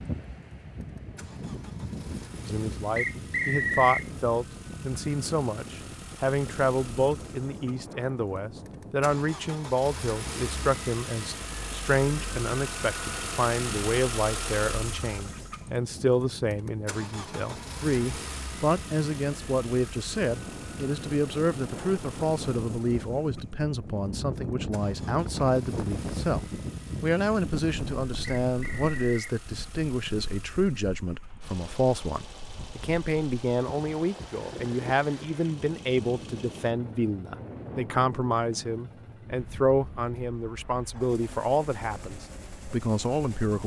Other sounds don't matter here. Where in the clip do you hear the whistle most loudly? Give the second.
4 s.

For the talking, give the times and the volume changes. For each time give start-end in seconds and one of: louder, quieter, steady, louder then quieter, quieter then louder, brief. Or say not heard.
2.5-43.6 steady.